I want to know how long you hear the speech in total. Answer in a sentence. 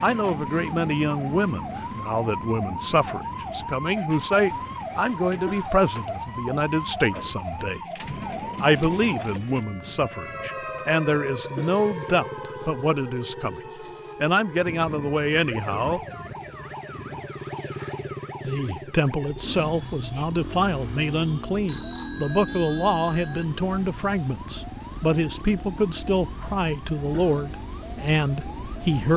The speech can be heard for 25 seconds in total.